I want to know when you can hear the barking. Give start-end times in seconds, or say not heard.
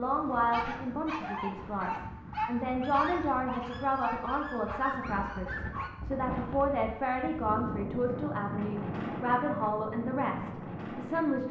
0.5-5.9.